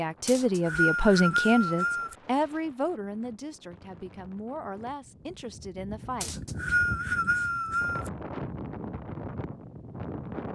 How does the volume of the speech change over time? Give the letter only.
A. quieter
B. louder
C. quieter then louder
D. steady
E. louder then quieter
A.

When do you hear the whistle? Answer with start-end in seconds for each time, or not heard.
0.2-2.1, 6.2-8.1.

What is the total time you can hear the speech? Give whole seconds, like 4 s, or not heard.
6 s.